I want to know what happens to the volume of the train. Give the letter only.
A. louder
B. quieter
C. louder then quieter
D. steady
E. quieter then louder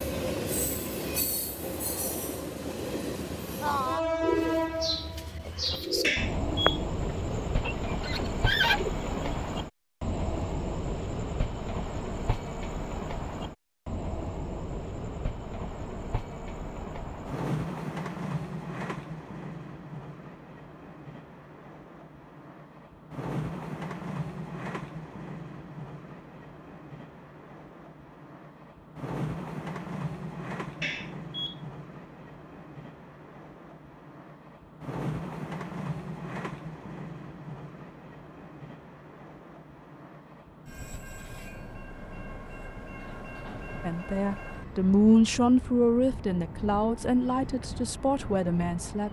B.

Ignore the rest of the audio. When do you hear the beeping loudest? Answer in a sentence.
The volume of the beeping peaks at 6 seconds.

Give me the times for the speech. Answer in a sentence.
The speech can be heard from 43.9 to 49.0 s.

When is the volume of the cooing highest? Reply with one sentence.
The volume of the cooing peaks at 9 seconds.